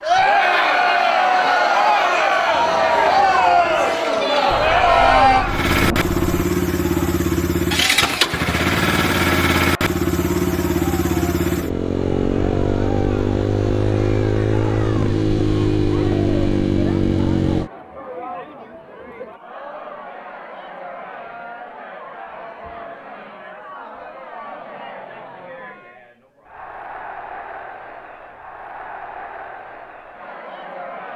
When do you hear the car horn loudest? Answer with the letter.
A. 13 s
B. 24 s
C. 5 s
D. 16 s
C.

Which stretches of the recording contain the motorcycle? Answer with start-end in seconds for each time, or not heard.
2.5-17.7.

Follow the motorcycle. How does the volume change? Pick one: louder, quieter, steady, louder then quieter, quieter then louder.
louder.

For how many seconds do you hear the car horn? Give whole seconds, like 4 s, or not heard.
2 s.